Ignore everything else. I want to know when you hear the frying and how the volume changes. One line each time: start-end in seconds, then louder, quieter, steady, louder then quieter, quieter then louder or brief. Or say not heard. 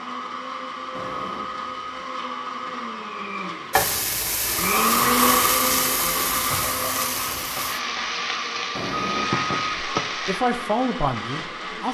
3.7-10.4 steady.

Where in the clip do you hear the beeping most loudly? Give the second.
9 s.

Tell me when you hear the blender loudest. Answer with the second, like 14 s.
5 s.